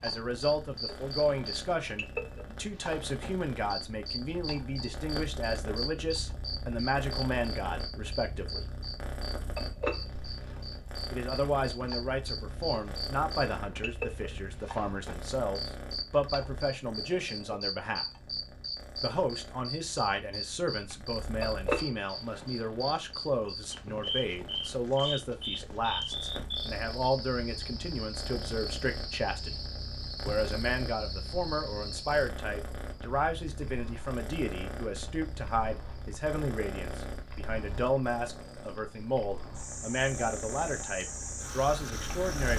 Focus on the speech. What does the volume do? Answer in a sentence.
The volume of the speech stays about the same.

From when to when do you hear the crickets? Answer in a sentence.
You can hear the crickets from 0.0 to 42.5 s.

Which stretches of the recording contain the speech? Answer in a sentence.
The speech can be heard from 0.0 to 8.7 s, from 11.1 to 18.1 s, from 19.0 to 29.6 s and from 30.2 to 42.5 s.